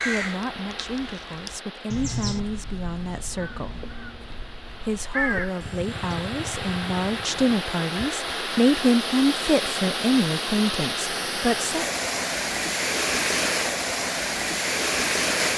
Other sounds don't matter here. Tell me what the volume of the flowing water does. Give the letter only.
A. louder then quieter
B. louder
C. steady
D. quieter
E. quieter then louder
B.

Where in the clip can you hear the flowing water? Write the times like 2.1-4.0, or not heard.
0.0-15.5.